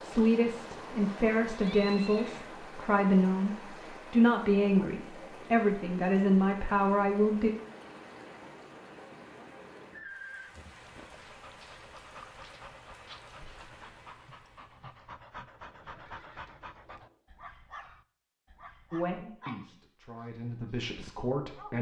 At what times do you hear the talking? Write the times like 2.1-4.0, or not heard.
0.0-7.5, 18.9-21.7.